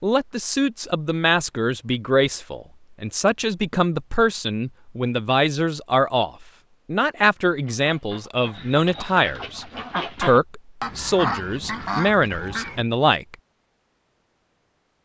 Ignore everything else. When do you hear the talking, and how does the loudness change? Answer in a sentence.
The talking can be heard from 0.0 to 13.3 s, at a steady volume.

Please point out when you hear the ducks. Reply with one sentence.
You can hear the ducks from 7.5 to 12.8 s.